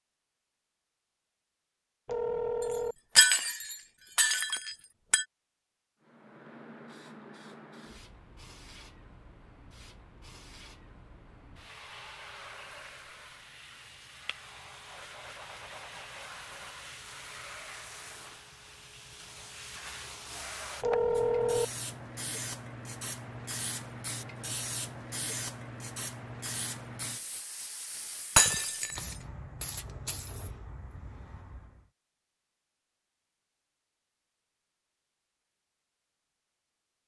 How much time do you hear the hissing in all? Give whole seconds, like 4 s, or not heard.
26 s.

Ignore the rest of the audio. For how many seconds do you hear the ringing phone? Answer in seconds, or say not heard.
2 s.